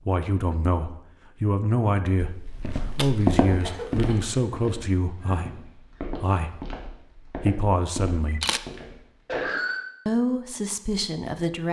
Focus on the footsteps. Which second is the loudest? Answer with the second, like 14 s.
3 s.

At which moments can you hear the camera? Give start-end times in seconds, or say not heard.
2.2-3.4, 8.2-8.7.